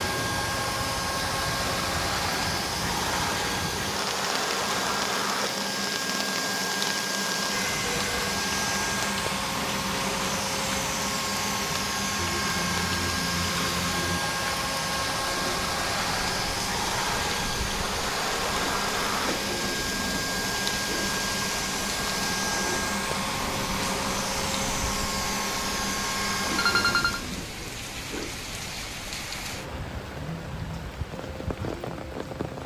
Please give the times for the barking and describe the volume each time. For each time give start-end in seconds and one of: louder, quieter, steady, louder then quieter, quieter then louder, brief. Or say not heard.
not heard.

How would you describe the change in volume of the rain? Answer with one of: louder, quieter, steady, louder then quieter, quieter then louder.
steady.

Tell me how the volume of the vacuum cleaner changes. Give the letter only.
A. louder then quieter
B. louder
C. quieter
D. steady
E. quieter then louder
D.